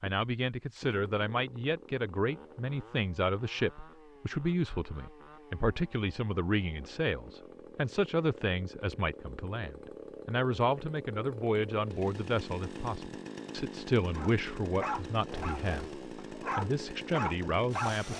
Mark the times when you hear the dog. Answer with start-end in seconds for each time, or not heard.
14.1-17.9.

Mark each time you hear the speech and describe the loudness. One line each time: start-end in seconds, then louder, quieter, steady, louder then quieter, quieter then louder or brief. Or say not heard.
0.0-18.1 steady.